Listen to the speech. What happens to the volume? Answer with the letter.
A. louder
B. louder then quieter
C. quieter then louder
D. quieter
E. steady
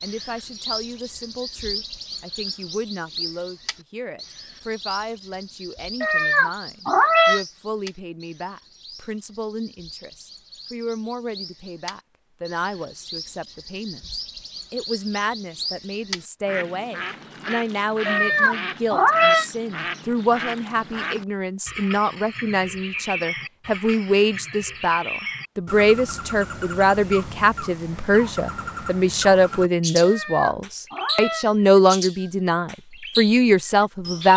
A.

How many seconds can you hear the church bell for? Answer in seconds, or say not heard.
not heard.